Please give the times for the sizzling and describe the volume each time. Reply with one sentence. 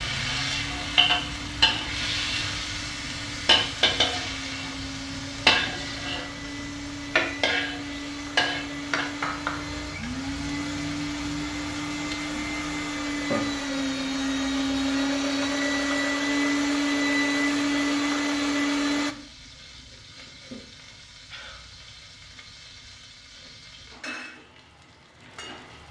The sizzling can be heard from 0.0 to 25.8 s, getting quieter.